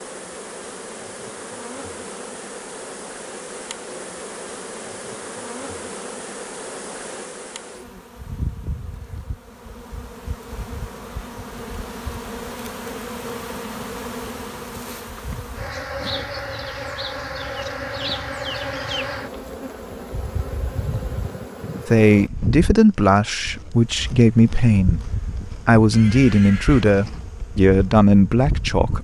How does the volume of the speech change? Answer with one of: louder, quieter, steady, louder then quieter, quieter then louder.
steady.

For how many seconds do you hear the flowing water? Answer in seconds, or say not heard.
not heard.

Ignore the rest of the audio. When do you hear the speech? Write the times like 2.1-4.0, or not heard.
21.9-29.0.